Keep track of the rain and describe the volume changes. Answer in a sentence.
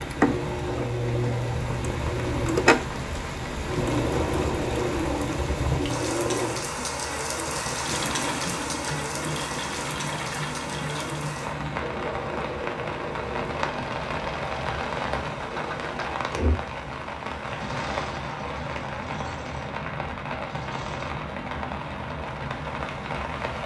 The volume of the rain stays about the same.